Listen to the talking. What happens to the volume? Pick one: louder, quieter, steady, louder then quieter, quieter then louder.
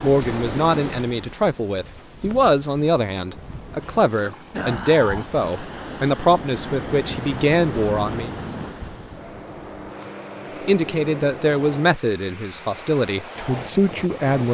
steady.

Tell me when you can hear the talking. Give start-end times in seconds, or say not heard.
0.0-8.3, 10.7-14.4.